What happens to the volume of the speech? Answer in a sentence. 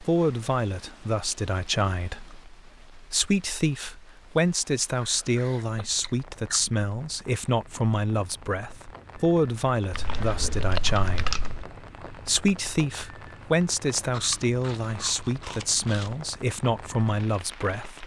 The loudness of the speech stays about the same.